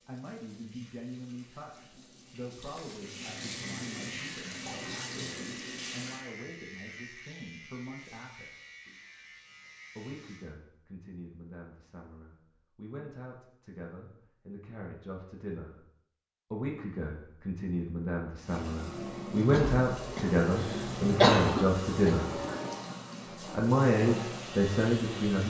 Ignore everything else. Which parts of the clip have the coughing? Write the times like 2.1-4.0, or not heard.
19.5-22.1.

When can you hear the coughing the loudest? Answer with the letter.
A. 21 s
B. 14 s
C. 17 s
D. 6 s
A.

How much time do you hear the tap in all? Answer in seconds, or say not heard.
13 s.